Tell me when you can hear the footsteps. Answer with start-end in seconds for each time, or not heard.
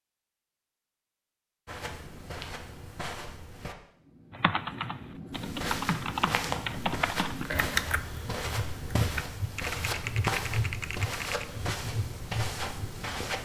1.6-3.8, 5.3-13.4.